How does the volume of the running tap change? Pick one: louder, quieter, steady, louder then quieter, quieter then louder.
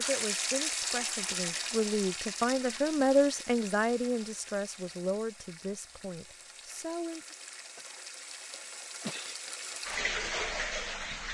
quieter then louder.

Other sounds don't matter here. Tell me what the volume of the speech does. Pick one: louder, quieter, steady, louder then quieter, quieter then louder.
louder then quieter.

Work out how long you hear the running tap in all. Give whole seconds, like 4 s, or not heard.
11 s.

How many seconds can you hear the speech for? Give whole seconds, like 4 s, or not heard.
7 s.